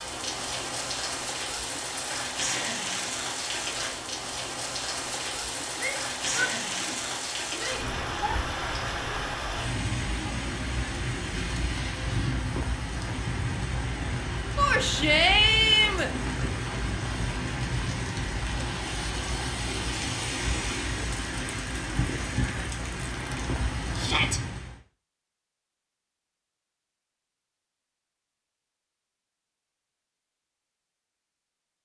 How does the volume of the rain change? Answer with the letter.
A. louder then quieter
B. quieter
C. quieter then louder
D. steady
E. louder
D.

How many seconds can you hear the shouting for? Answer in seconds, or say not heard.
5 s.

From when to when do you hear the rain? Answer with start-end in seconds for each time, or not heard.
0.0-24.8.